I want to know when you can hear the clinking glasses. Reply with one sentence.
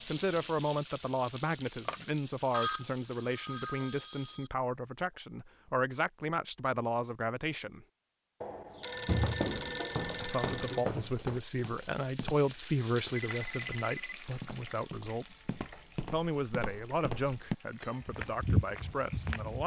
The clinking glasses can't be heard in this clip.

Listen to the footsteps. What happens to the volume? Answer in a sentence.
The volume of the footsteps goes down, then up.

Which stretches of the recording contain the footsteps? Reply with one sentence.
The footsteps can be heard from 9.0 to 12.4 s and from 14.4 to 19.6 s.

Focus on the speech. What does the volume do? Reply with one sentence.
The volume of the speech stays about the same.